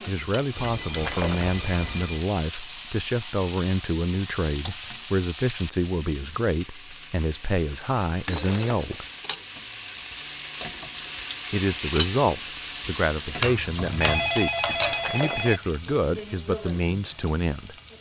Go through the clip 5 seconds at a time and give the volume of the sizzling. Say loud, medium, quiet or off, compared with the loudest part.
medium, medium, loud, medium.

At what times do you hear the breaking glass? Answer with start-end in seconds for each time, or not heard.
0.9-1.6, 8.2-9.1, 14.9-15.6.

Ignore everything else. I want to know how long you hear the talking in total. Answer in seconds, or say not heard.
15 s.